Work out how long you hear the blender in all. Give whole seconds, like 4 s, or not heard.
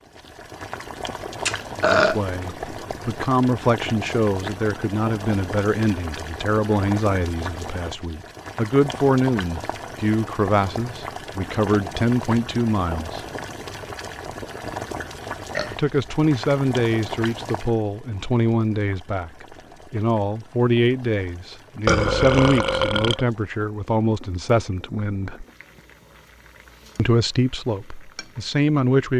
not heard.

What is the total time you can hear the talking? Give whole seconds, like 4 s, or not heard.
23 s.